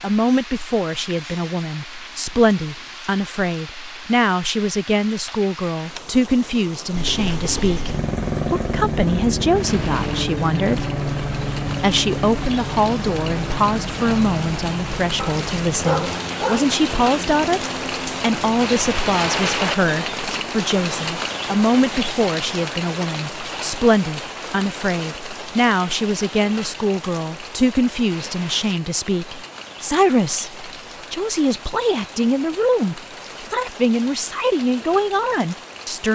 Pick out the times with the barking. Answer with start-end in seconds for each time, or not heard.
15.2-16.8.